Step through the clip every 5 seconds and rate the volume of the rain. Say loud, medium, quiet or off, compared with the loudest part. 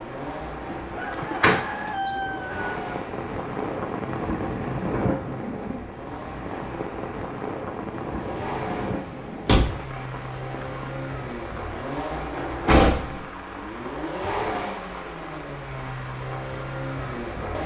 loud, loud, medium, medium.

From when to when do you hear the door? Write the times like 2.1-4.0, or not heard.
1.1-1.6, 9.4-9.8, 12.7-13.2.